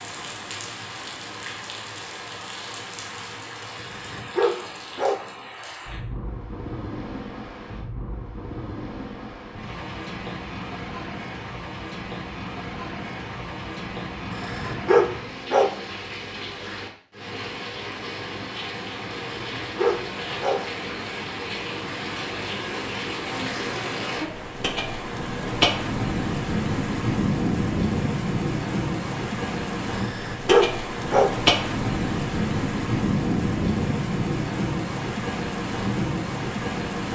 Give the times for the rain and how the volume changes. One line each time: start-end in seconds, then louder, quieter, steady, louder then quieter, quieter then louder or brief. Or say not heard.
0.0-37.1 louder.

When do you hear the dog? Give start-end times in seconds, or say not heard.
3.8-5.2, 14.3-15.8, 19.4-20.6, 29.9-31.4.